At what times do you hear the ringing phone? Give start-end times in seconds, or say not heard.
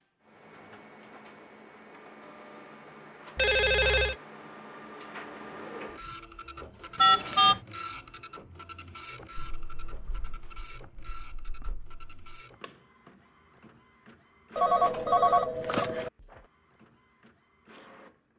3.4-4.2, 7.0-7.6, 14.6-16.1.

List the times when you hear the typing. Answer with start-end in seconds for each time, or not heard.
9.3-12.4.